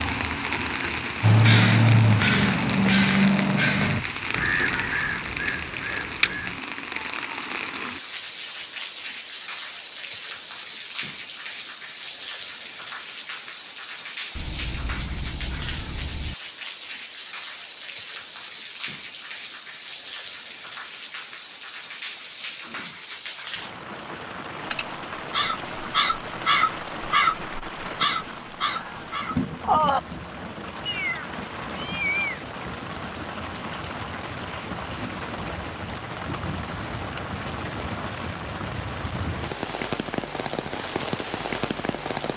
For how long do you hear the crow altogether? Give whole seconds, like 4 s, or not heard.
11 s.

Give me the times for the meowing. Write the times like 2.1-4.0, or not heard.
14.3-16.4, 30.9-32.4.